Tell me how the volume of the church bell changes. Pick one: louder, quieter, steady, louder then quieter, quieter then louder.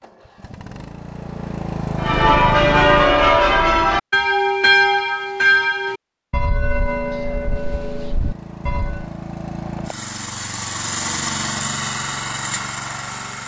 quieter.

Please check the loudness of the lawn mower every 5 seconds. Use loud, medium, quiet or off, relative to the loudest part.
loud, medium, loud.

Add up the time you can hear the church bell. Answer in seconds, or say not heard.
7 s.